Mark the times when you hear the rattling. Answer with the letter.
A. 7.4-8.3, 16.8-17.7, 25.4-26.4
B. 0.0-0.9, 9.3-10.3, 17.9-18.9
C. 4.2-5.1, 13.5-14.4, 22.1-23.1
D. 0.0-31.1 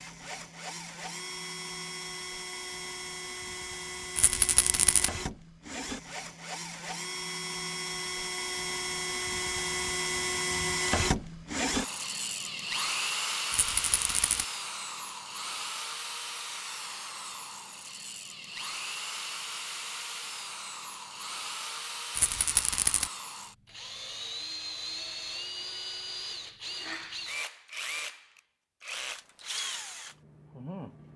C.